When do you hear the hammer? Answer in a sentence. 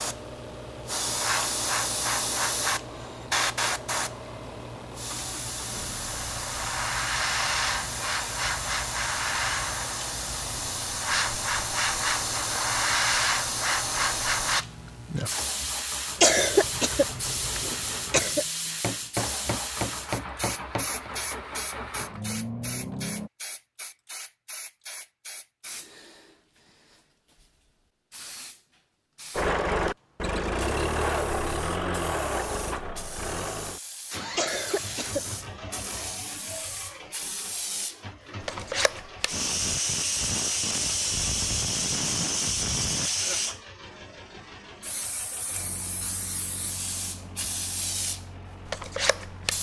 The hammer can be heard from 18.6 to 21.1 s.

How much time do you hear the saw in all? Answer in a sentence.
You can't hear the saw here.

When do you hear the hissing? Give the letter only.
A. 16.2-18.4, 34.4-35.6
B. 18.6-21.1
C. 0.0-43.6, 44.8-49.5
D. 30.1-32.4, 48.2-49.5
C.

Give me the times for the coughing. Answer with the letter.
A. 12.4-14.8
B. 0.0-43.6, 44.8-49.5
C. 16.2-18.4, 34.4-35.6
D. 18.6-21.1
C.